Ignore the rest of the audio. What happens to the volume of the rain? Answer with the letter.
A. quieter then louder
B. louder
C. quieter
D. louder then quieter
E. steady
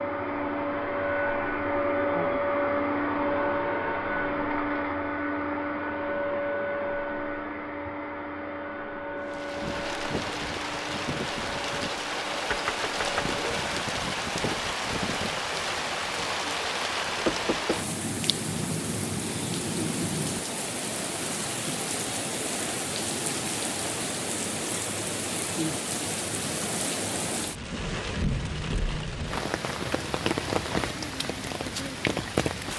E.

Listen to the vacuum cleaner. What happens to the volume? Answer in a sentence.
The loudness of the vacuum cleaner goes down.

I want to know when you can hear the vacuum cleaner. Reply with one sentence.
You can hear the vacuum cleaner from 0.0 to 13.7 s.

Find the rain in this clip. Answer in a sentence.
You can hear the rain from 9.2 to 32.7 s.